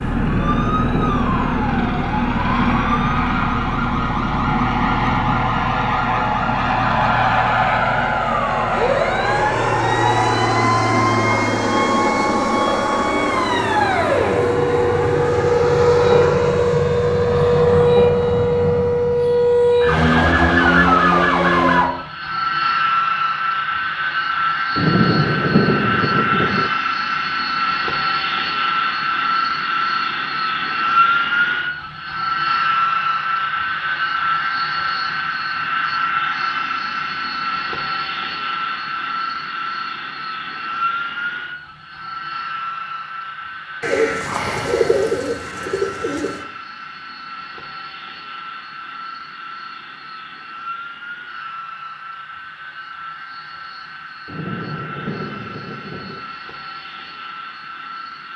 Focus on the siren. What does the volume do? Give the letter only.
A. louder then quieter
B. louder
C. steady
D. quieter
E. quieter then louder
B.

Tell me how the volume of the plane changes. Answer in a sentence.
The loudness of the plane goes down.